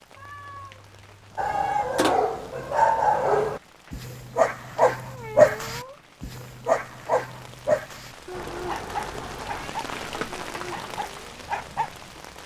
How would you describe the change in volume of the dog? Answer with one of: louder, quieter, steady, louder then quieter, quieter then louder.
quieter.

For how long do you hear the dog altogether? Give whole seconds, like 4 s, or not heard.
11 s.